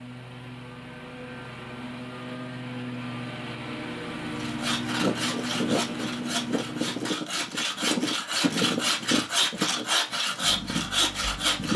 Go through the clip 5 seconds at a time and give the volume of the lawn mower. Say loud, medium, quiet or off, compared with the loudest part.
loud, loud, off.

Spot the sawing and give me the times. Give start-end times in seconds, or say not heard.
4.3-11.7.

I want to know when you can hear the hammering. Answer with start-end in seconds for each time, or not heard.
not heard.